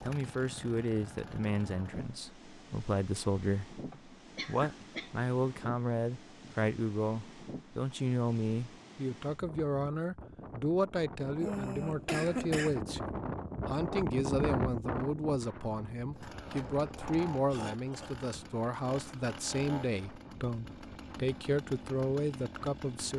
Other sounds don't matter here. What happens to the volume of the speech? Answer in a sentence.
The loudness of the speech stays about the same.